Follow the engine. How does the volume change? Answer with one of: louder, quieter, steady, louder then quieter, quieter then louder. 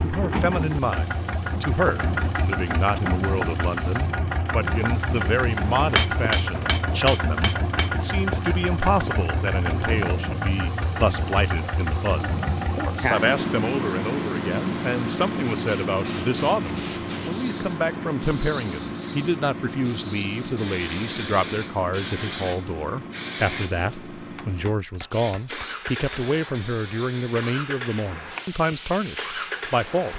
quieter.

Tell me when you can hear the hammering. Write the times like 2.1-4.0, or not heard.
5.8-7.9, 24.4-26.2.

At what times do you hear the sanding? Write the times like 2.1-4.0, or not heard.
not heard.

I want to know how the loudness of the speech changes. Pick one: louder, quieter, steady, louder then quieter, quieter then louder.
steady.